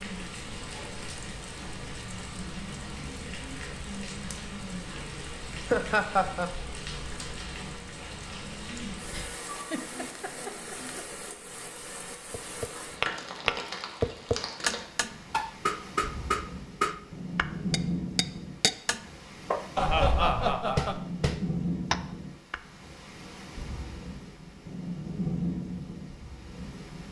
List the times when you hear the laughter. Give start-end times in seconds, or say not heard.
5.7-6.5, 9.1-10.9, 19.8-21.0.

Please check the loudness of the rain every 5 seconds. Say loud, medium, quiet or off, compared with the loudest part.
medium, medium, medium, loud, loud, loud.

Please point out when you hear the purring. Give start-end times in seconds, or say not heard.
not heard.